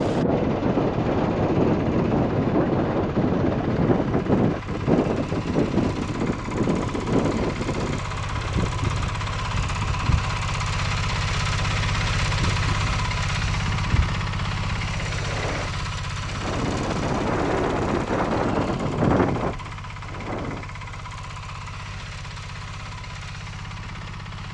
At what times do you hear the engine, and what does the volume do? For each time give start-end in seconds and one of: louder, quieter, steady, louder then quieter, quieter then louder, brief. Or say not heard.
0.0-24.4 louder then quieter.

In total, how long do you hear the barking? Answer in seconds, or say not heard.
not heard.